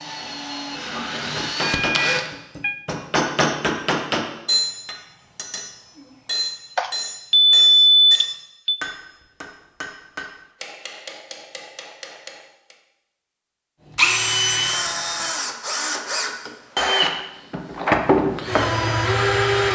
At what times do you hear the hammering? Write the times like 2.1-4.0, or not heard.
1.1-12.8.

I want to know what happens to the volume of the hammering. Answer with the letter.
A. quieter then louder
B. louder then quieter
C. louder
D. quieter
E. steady
D.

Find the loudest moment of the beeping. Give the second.
8 s.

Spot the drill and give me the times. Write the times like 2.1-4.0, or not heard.
0.0-2.3, 13.9-19.7.